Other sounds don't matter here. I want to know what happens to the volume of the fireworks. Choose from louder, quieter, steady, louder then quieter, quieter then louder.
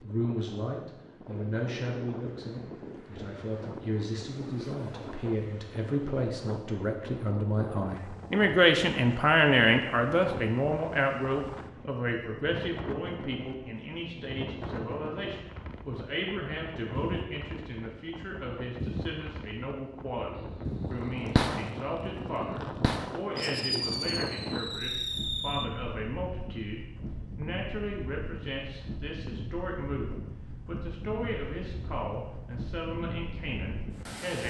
quieter then louder.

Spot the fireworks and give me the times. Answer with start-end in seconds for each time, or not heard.
20.4-25.6.